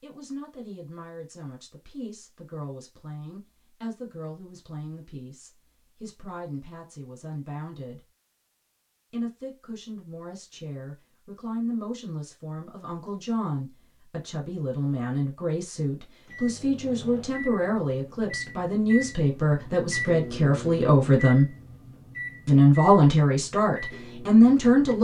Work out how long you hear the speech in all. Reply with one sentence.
You can hear the speech for 23 seconds altogether.